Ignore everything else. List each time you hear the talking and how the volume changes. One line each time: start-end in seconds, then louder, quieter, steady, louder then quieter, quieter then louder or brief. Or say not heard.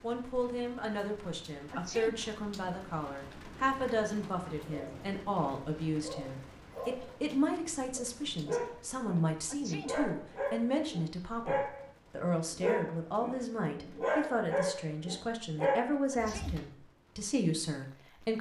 0.0-18.3 steady.